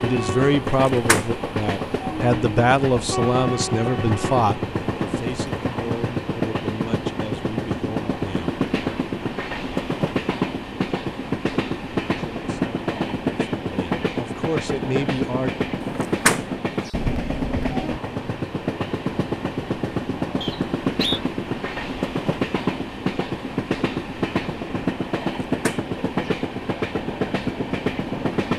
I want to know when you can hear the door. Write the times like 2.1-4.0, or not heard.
0.8-1.3, 15.9-16.9, 25.5-26.3.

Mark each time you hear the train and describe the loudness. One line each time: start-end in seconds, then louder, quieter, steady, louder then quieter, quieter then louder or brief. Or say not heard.
0.0-28.5 steady.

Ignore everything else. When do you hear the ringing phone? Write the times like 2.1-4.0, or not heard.
not heard.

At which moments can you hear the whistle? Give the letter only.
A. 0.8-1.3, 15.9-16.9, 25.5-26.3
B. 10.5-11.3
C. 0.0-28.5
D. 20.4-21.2
D.